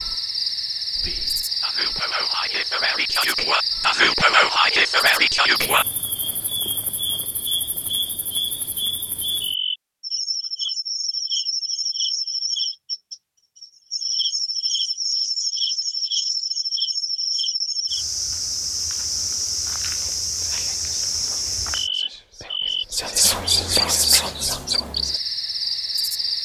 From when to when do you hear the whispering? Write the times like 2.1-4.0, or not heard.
0.9-5.8, 19.9-25.2.